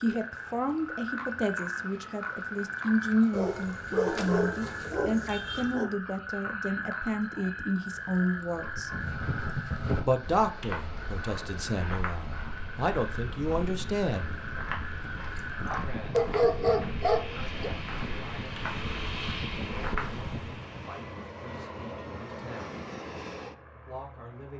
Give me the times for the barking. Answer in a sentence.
The barking can be heard from 3.3 to 5.9 s and from 16.1 to 17.7 s.